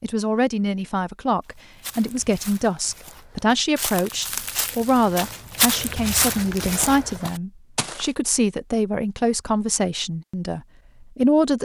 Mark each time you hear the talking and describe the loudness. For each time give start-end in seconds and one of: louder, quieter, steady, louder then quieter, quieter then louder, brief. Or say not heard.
0.0-11.6 steady.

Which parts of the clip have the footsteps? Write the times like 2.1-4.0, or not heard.
1.8-8.3.